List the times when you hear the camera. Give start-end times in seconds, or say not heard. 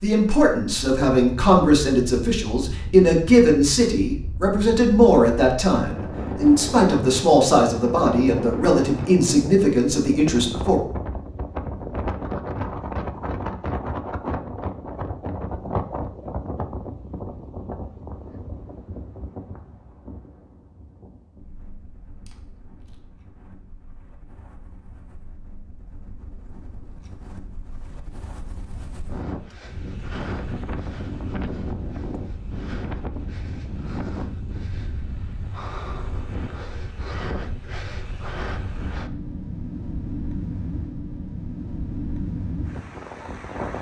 22.2-23.0.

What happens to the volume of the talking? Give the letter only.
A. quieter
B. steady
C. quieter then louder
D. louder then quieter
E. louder
B.